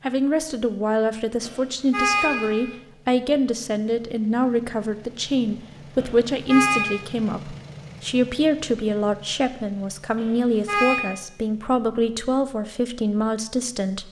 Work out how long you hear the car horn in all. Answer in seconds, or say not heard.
3 s.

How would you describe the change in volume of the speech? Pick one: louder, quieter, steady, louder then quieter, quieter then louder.
steady.